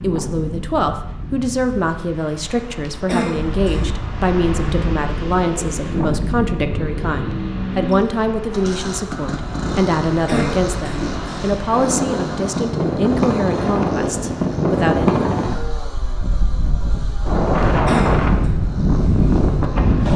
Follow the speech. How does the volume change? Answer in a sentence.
The volume of the speech stays about the same.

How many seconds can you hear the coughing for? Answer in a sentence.
The coughing can be heard for 3 seconds in total.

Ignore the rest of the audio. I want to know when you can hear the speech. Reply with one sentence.
The speech can be heard from 0.0 to 15.2 s.